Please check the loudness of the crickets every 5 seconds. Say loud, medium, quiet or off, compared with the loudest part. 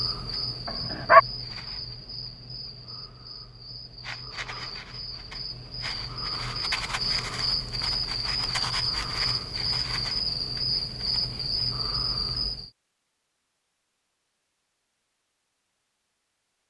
medium, loud, loud, off.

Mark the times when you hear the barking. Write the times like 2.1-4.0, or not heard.
0.7-1.2.